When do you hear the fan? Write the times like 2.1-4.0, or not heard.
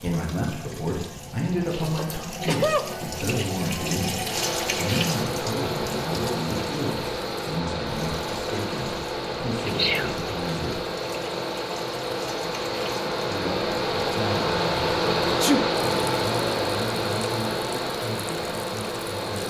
4.2-19.4.